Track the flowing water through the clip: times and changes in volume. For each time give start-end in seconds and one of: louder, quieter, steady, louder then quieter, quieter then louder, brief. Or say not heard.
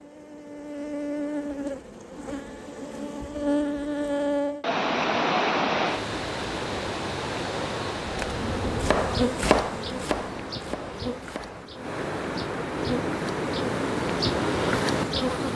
4.6-15.5 quieter then louder.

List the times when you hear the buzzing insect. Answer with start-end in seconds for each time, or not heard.
0.0-4.7, 8.1-15.5.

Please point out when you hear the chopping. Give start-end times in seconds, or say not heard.
8.8-11.6.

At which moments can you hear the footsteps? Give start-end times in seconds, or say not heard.
not heard.